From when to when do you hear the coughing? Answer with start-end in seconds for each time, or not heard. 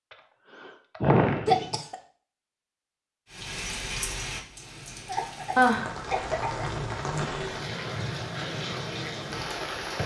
1.4-1.9, 5.0-6.7.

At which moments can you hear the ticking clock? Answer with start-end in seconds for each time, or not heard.
not heard.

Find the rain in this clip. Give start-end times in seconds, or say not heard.
3.2-10.0.